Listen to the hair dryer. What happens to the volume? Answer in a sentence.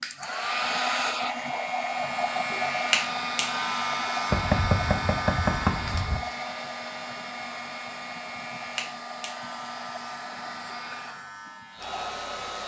The loudness of the hair dryer goes down.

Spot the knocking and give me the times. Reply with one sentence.
You can hear the knocking from 4.3 to 6.2 s.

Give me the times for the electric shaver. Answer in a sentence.
The electric shaver can be heard from 0.0 to 12.6 s.